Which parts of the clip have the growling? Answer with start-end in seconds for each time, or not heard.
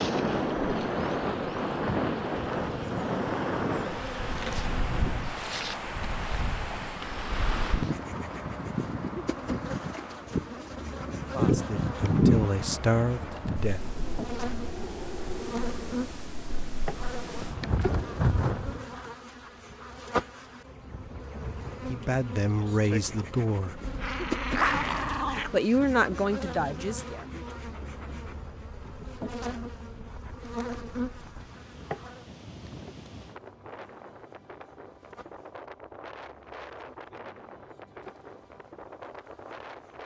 23.8-25.6.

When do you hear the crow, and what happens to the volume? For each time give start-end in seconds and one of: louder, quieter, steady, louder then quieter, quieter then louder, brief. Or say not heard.
not heard.